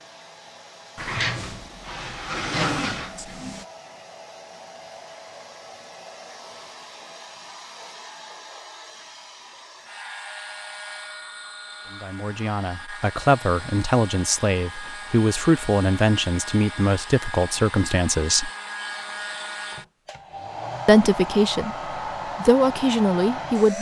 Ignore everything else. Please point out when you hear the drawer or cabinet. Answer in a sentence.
The drawer or cabinet can be heard from 0.9 to 3.6 s.